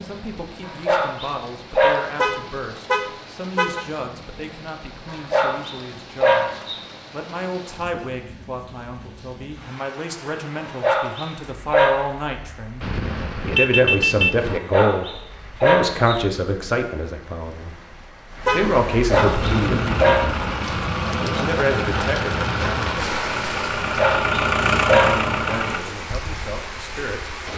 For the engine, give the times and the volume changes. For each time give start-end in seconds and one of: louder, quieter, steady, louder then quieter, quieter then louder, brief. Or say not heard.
19.4-25.8 louder.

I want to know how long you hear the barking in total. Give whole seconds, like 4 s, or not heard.
9 s.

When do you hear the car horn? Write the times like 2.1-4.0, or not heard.
2.1-3.9, 12.8-14.6, 18.4-19.3.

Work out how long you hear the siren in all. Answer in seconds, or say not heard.
not heard.